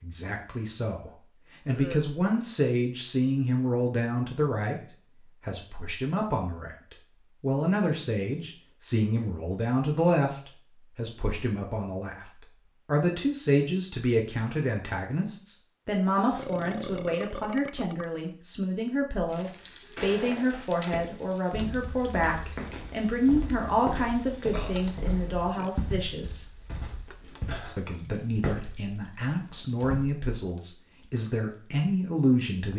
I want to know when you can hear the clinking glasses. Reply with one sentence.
You can't hear the clinking glasses here.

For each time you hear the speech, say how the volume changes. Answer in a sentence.
The speech can be heard from 0.0 to 26.4 s, at a steady volume; and from 27.8 to 32.7 s, getting louder.